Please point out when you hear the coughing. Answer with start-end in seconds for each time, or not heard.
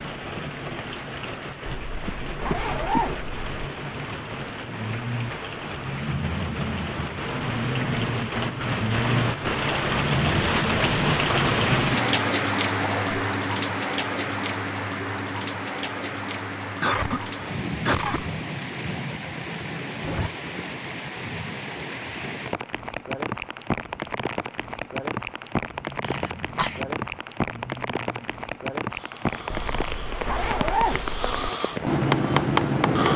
2.0-3.0, 16.8-18.2, 26.1-26.8.